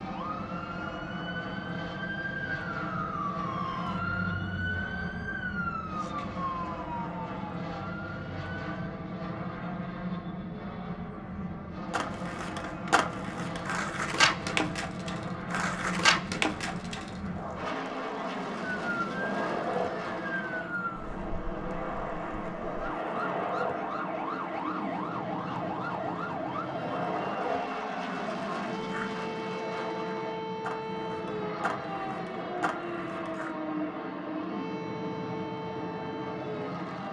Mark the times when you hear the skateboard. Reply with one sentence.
You can hear the skateboard from 11.9 to 29.1 s and from 30.6 to 33.5 s.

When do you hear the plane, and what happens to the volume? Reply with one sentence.
The plane can be heard from 0.0 to 37.0 s, at a steady volume.